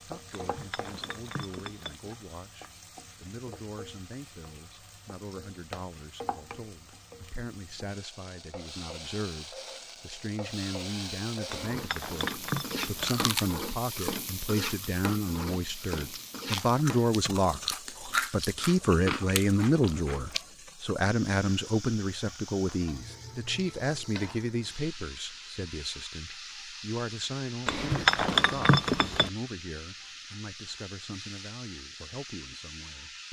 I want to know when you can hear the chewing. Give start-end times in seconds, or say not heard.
13.0-20.4.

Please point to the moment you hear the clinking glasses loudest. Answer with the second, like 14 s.
28 s.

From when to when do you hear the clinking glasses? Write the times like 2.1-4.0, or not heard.
0.3-1.9, 11.4-13.2, 27.6-29.3.